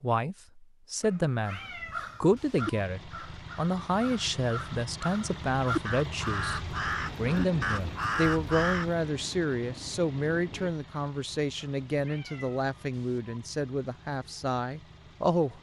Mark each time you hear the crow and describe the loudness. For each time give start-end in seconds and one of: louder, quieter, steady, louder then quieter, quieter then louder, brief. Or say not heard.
1.4-8.9 quieter then louder.